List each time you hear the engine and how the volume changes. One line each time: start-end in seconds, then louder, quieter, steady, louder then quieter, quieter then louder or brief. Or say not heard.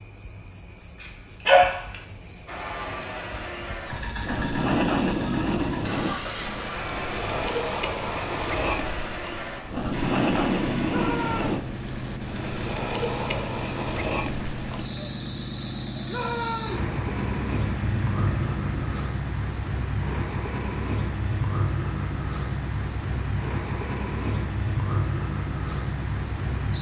2.5-19.1 steady.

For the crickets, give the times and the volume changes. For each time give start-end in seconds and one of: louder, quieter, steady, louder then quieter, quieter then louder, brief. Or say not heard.
0.0-26.7 steady.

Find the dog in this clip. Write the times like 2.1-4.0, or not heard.
1.0-1.9.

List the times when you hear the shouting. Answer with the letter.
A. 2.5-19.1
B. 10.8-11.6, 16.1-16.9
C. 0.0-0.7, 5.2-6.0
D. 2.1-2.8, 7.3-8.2
B.